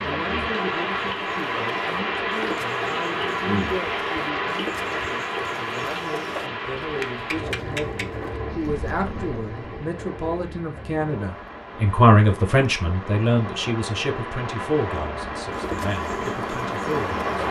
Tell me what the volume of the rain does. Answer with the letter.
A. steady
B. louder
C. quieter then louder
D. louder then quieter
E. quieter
C.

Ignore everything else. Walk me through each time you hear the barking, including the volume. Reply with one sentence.
The barking can't be heard in this clip.